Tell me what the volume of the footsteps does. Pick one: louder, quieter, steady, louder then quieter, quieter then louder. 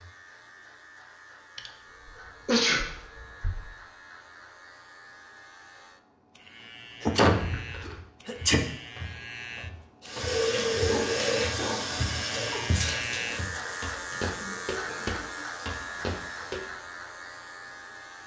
louder.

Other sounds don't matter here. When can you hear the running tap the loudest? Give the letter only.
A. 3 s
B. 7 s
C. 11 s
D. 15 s
C.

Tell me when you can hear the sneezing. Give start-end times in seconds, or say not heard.
1.6-3.7, 7.0-8.6, 12.3-12.8.